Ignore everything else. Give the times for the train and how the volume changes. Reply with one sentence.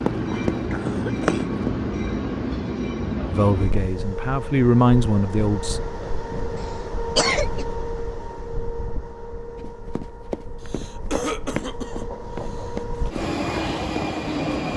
The train can be heard from 0.0 to 14.7 s, getting quieter then louder.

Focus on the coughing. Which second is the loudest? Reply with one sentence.
The loudest moment of the coughing is at 7 seconds.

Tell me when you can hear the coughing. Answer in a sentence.
You can hear the coughing from 0.3 to 1.5 s, from 6.5 to 7.7 s and from 10.6 to 13.1 s.